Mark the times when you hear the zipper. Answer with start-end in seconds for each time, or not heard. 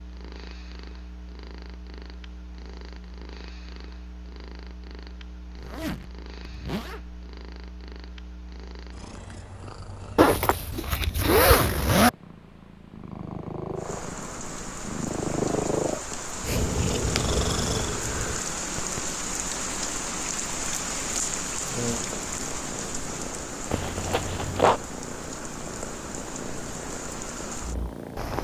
5.5-7.2, 10.2-12.1, 23.7-24.8.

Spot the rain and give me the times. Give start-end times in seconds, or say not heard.
13.7-28.3.